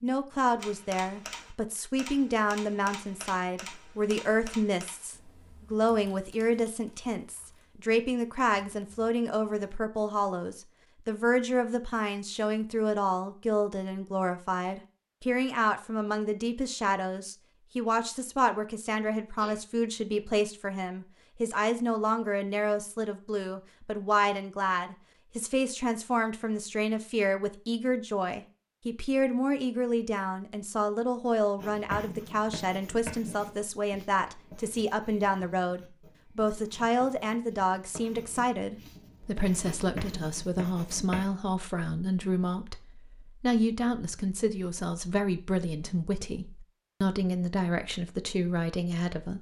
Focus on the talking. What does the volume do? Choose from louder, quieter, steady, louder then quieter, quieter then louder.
steady.